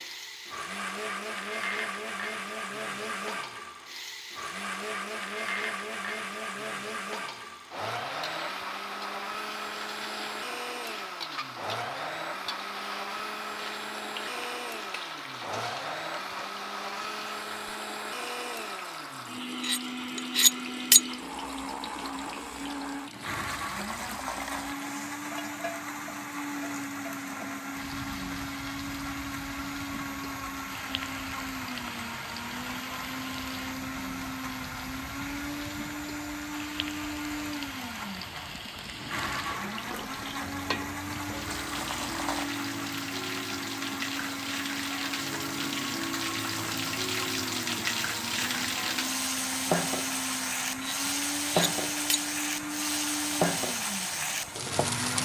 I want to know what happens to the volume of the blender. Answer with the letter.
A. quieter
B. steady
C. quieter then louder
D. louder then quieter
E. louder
B.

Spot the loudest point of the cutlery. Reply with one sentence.
The loudest moment of the cutlery is at 21 seconds.